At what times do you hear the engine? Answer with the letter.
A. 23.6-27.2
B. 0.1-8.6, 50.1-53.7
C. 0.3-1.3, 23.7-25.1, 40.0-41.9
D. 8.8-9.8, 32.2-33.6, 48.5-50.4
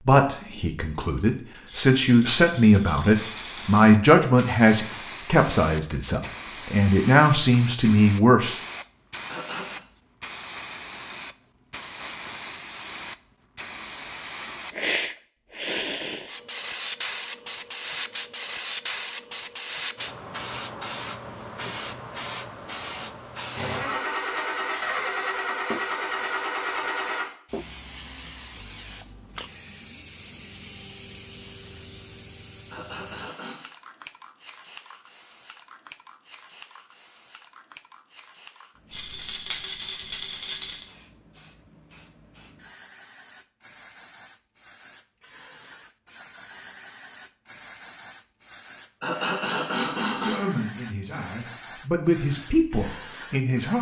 A.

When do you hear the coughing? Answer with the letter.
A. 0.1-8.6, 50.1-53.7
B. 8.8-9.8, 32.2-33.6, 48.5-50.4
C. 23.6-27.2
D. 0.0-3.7
B.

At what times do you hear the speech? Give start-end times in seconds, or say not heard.
0.1-8.6, 50.1-53.7.